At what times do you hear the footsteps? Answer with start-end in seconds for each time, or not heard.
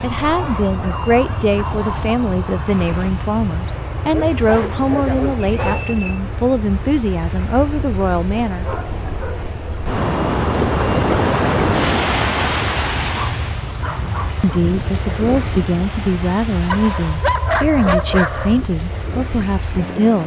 not heard.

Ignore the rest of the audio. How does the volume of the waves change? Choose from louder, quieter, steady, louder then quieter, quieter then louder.
louder then quieter.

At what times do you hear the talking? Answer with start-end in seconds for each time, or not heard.
0.0-8.7, 14.0-20.2.